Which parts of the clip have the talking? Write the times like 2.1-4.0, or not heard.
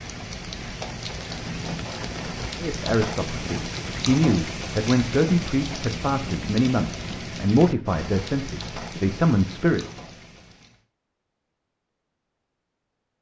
2.5-9.8.